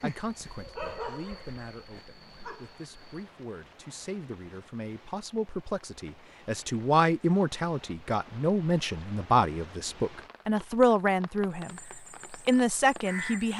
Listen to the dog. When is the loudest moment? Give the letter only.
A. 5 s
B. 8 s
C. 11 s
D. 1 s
D.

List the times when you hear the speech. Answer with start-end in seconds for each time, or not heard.
0.0-13.5.